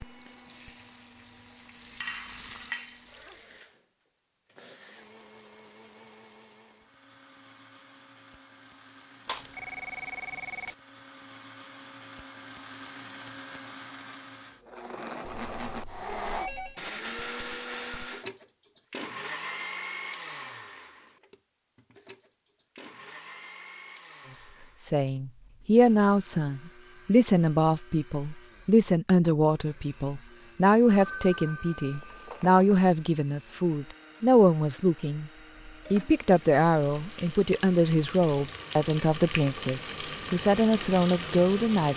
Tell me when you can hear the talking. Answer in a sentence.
The talking can be heard from 24.4 to 35.3 s and from 35.9 to 41.9 s.